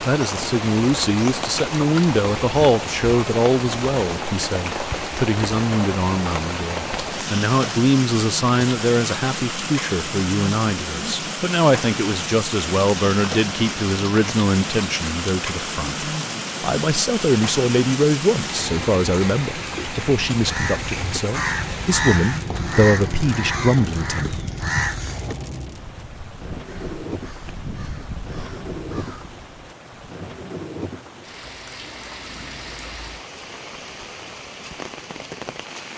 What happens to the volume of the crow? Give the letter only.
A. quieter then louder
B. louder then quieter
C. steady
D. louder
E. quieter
E.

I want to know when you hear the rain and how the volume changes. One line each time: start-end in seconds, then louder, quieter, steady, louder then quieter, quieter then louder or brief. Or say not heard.
0.0-35.9 quieter.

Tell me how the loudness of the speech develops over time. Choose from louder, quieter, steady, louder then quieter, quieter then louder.
steady.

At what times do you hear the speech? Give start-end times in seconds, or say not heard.
0.0-24.4.